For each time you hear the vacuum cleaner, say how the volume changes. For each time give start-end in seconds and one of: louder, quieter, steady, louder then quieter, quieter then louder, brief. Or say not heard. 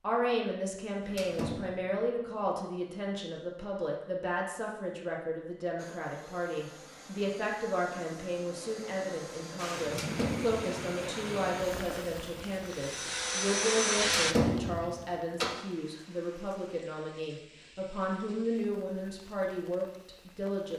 5.8-14.3 louder.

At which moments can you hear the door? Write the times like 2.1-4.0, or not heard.
1.0-1.7, 9.8-10.8, 14.0-15.6.